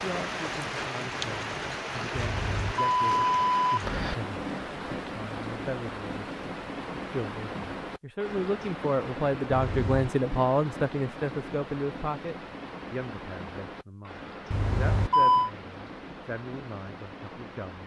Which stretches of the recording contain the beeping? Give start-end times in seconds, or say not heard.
2.1-4.2, 9.5-10.1, 14.5-15.5.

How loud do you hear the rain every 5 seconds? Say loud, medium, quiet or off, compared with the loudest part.
loud, loud, medium, medium.